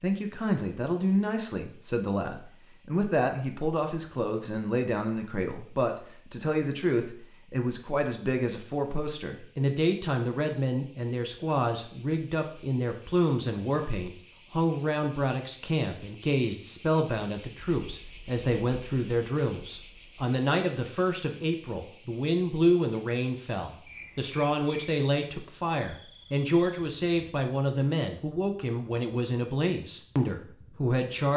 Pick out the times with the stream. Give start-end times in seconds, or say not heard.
not heard.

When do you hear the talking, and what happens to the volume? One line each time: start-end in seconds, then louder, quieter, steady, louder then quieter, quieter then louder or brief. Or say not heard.
0.0-31.3 steady.